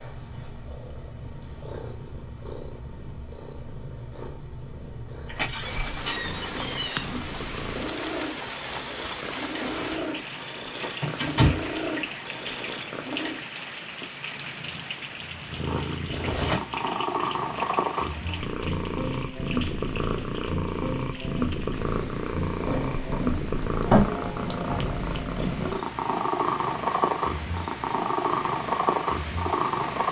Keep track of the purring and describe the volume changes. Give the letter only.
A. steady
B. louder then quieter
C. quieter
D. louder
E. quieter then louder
D.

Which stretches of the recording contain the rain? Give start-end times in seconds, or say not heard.
5.6-30.0.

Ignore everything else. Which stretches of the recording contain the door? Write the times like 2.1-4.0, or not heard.
5.2-7.0, 10.8-11.7, 22.6-24.0.